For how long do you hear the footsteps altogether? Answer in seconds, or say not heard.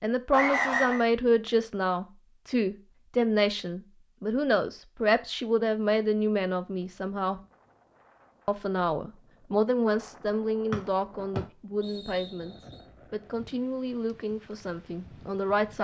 not heard.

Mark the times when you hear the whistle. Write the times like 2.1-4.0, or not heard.
0.3-1.1, 10.7-12.8.